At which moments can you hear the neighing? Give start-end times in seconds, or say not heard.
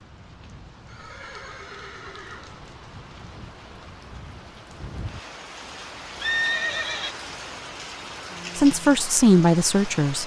0.8-2.6, 6.2-7.2.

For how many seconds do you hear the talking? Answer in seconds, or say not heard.
2 s.